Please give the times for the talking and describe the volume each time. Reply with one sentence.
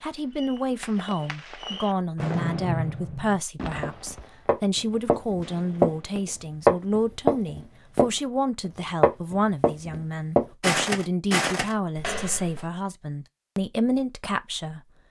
The talking can be heard from 0.0 to 14.8 s, at a steady volume.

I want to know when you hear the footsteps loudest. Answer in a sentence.
The volume of the footsteps peaks at 7 seconds.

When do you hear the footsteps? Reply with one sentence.
You can hear the footsteps from 3.8 to 5.9 s, from 6.7 to 8.1 s and from 9.0 to 12.7 s.